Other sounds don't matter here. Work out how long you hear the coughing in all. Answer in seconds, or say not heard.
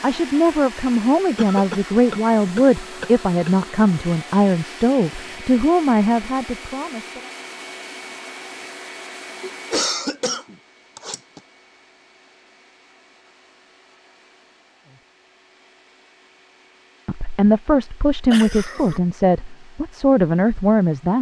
5 s.